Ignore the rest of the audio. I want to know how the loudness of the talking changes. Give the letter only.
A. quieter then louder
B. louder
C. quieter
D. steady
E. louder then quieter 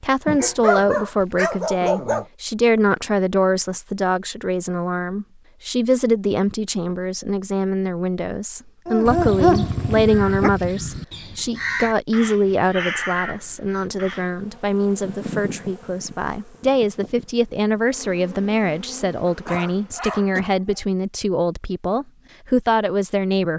D.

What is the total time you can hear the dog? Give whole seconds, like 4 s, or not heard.
5 s.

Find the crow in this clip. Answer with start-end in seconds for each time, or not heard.
9.1-14.2.